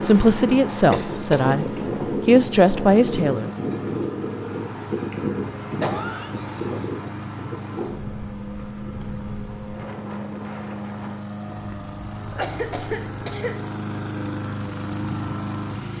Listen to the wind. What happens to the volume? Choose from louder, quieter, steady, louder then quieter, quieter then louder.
quieter.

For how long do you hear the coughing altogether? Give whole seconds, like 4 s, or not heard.
3 s.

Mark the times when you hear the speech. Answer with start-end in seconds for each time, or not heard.
0.0-1.6, 2.2-3.5.